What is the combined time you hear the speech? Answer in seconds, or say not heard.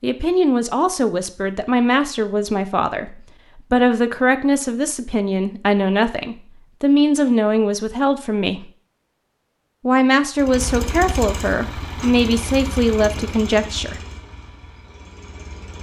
13 s.